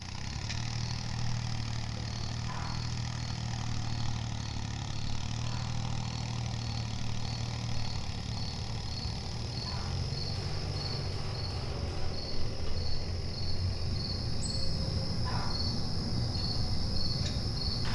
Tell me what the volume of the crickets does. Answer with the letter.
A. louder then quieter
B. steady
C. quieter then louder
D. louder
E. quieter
D.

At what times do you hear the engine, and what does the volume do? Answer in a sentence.
You can hear the engine from 0.0 to 17.9 s, getting quieter.